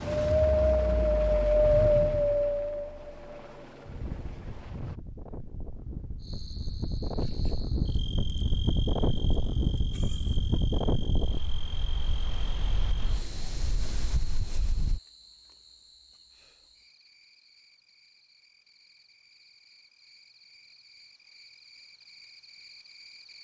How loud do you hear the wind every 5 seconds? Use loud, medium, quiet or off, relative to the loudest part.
loud, medium, medium, off, off.